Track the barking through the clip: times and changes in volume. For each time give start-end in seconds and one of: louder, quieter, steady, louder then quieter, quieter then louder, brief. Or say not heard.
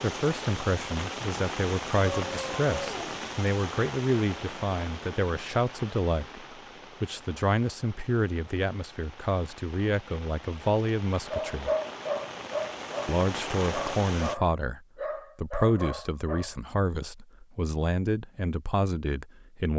11.3-16.6 quieter.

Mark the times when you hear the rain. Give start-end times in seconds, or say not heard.
0.0-14.3.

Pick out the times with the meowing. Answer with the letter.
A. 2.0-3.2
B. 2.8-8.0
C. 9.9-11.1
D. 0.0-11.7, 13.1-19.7
A.